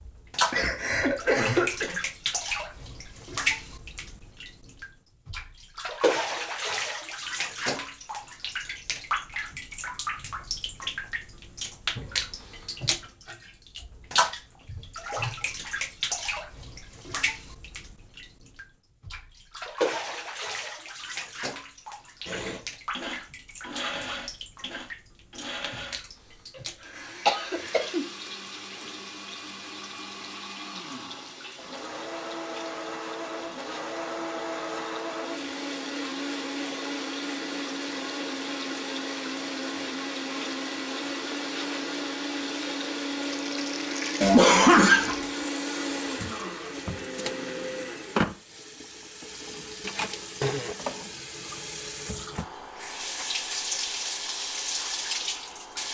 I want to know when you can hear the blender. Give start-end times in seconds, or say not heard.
22.2-48.2.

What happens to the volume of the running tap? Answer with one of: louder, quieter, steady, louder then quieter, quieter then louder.
quieter then louder.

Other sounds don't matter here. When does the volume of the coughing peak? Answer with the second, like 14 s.
45 s.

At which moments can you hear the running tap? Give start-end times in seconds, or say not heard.
0.0-55.8.